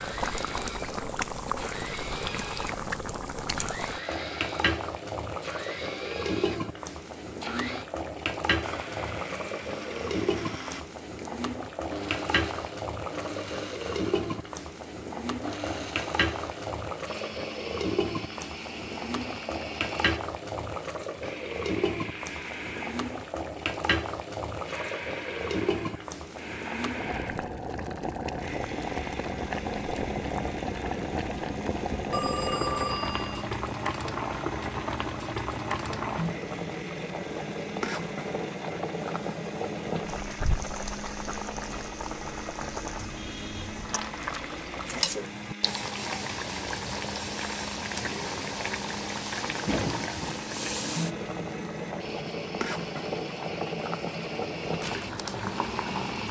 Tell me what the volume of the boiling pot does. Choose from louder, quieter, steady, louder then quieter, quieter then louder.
steady.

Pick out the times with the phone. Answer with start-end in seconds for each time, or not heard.
32.1-33.5.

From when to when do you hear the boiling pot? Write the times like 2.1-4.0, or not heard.
0.0-56.2.